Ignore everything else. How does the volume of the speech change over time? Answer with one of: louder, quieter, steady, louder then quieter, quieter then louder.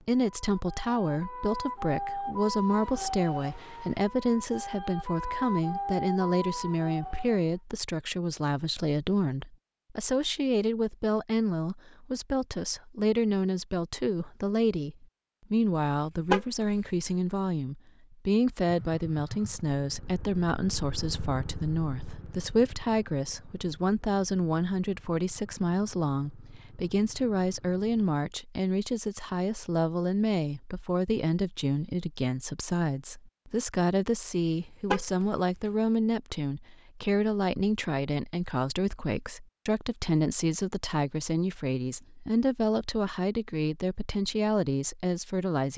steady.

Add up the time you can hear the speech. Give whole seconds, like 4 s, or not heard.
46 s.